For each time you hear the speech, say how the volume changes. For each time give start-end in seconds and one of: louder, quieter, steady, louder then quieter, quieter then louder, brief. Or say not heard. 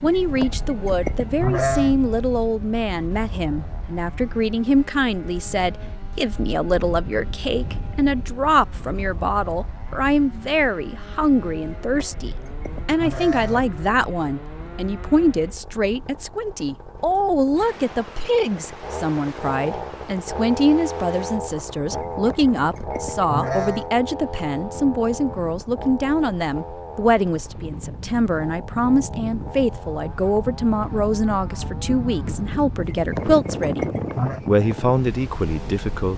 0.0-33.9 steady
34.5-36.1 brief.